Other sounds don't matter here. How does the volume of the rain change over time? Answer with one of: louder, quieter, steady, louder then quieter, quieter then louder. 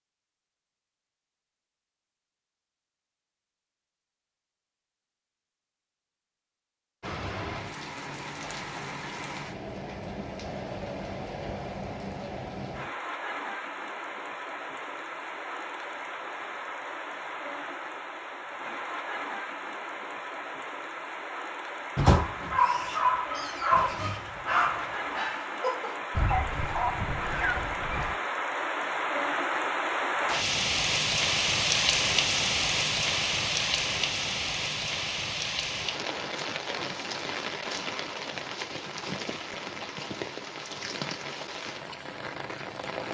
louder then quieter.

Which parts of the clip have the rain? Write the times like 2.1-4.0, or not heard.
7.0-43.1.